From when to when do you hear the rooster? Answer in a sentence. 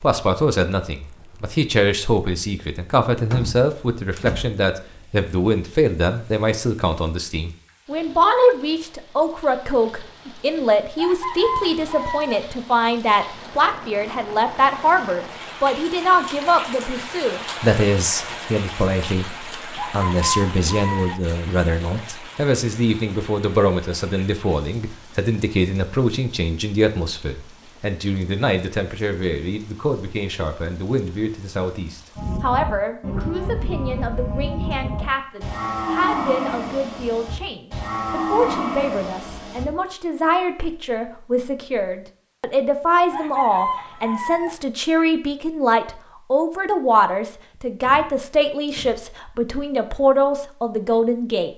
The rooster can be heard from 10.9 to 12.4 s, from 19.8 to 21.2 s and from 43.1 to 44.5 s.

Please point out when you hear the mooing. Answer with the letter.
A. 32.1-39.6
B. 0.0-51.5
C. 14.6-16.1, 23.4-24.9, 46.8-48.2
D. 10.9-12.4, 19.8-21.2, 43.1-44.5
A.